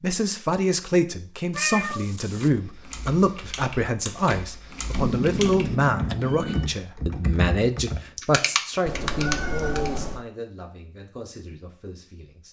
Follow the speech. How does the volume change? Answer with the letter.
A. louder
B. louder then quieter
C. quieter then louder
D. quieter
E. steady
D.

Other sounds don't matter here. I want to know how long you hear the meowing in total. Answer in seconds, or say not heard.
4 s.